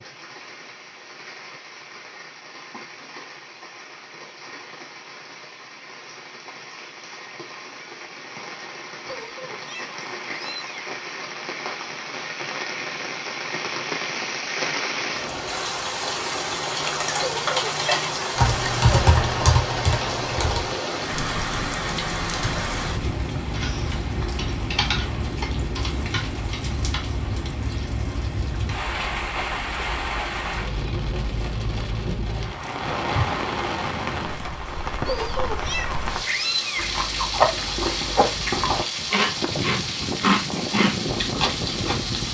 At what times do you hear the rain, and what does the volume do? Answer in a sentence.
The rain can be heard from 0.0 to 42.2 s, getting louder.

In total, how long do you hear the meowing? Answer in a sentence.
You can hear the meowing for 5 seconds altogether.